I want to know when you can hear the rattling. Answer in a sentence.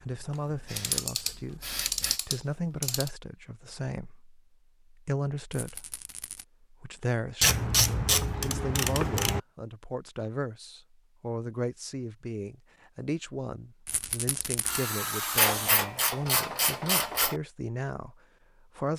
The rattling can be heard from 5.5 to 6.5 s and from 13.8 to 14.8 s.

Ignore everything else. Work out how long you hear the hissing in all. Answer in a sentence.
You can hear the hissing for 2 seconds altogether.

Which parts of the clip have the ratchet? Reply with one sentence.
The ratchet can be heard from 0.8 to 3.1 s, from 7.4 to 9.4 s and from 15.3 to 17.4 s.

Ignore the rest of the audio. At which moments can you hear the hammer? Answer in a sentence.
You can't hear the hammer here.